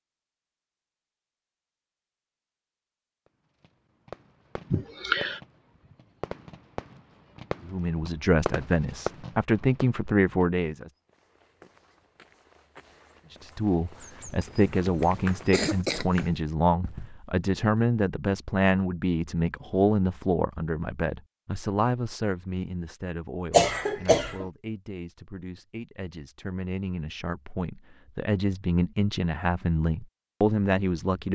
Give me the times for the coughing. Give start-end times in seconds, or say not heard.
4.7-5.4, 14.8-16.3, 23.5-24.4.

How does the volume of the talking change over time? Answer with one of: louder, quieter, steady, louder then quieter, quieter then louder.
quieter then louder.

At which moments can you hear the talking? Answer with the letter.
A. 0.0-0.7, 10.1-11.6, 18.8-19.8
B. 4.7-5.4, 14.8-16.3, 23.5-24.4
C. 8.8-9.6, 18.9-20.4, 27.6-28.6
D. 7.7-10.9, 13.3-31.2
D.